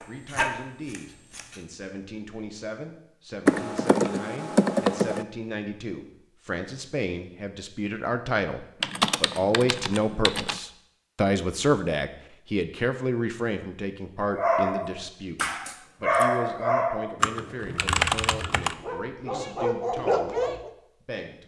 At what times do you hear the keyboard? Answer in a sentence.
The keyboard can be heard from 3.5 to 5.2 s, from 8.8 to 10.6 s and from 17.2 to 18.8 s.